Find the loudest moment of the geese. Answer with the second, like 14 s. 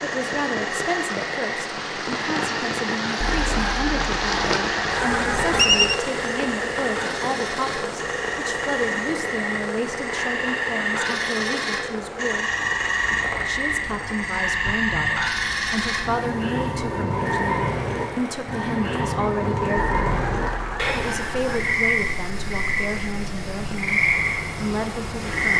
6 s.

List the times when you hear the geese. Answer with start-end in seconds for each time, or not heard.
3.2-6.0, 19.8-21.6.